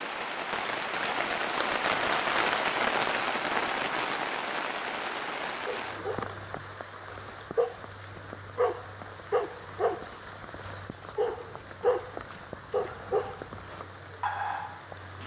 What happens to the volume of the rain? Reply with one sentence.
The volume of the rain goes down.